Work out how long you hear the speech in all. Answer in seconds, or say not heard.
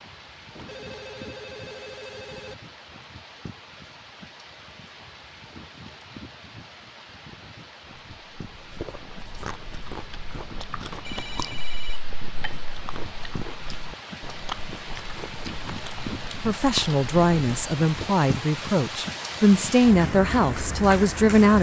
5 s.